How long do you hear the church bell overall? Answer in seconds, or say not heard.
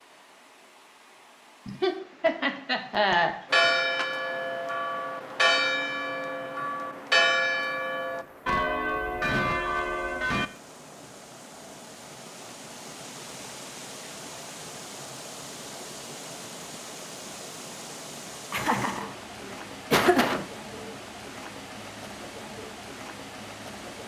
7 s.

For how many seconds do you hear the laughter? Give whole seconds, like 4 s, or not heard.
4 s.